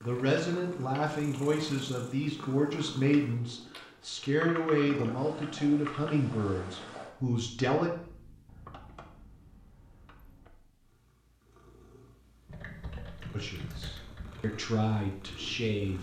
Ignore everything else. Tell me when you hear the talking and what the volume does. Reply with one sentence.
You can hear the talking from 0.0 to 7.9 s, at a steady volume; and briefly from 13.3 to 15.9 s.